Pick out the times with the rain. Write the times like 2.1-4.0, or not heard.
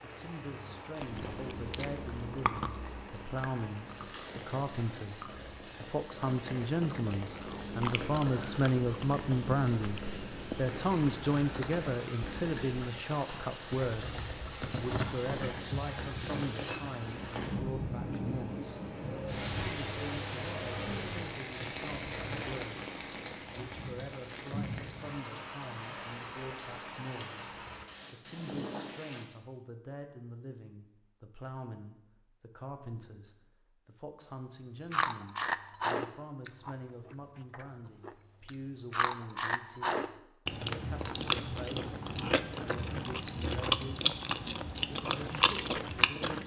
0.0-29.2.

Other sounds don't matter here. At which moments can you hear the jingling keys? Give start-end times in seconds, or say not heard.
13.3-15.3.